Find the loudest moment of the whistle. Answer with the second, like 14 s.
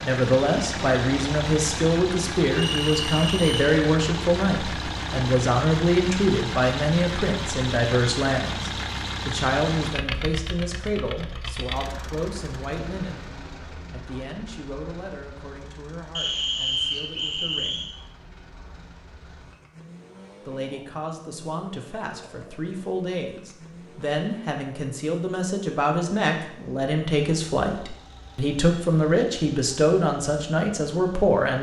17 s.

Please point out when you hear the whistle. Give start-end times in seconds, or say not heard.
2.5-3.8, 16.1-17.9.